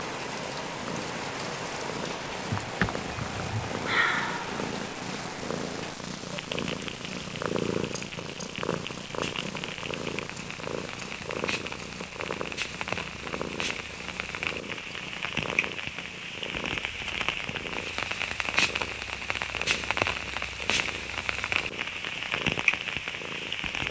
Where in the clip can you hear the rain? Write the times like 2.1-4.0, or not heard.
0.0-23.8.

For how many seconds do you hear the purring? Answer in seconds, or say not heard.
24 s.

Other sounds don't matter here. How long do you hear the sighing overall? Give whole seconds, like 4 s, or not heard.
2 s.